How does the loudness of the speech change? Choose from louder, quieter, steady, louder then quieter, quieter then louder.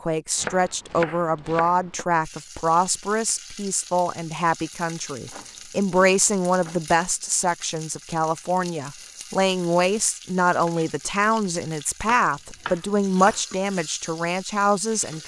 steady.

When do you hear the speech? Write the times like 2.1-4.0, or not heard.
0.0-15.2.